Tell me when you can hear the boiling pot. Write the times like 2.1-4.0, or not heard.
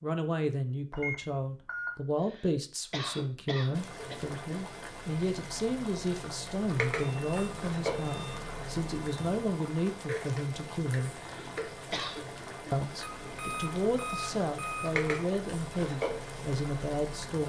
3.7-17.4.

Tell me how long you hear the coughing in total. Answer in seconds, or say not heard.
3 s.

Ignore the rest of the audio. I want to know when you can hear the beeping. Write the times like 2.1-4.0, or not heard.
0.9-1.9, 7.0-9.6, 13.0-14.9.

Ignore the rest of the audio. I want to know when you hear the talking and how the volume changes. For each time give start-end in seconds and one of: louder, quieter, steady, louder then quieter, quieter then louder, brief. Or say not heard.
0.0-11.2 steady
12.7-17.4 steady.